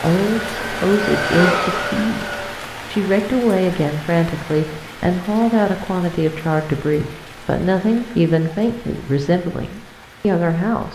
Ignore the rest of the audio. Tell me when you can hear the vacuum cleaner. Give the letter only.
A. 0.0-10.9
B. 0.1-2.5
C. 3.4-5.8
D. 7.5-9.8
B.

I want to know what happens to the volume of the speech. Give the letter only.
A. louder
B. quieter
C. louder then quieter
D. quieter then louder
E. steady
E.